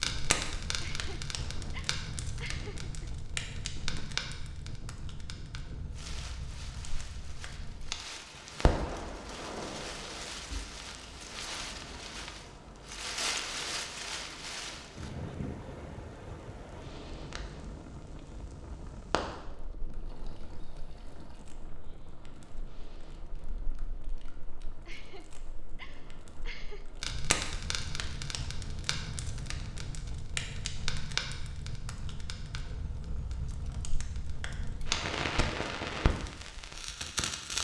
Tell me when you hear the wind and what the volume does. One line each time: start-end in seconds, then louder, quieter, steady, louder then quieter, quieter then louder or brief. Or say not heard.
0.0-29.9 louder then quieter.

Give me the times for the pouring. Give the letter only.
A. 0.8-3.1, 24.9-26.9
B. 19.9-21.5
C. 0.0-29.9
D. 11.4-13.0
B.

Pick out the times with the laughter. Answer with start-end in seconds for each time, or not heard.
0.8-3.1, 24.9-26.9.